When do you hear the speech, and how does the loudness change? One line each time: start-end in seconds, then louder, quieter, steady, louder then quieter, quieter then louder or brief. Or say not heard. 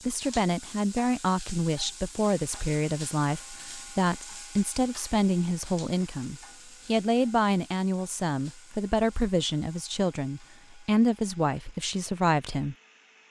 0.1-12.8 steady.